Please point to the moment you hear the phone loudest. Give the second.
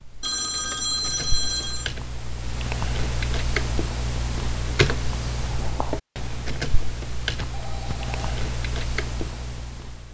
1 s.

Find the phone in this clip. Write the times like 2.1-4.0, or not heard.
0.2-1.9, 7.3-8.4.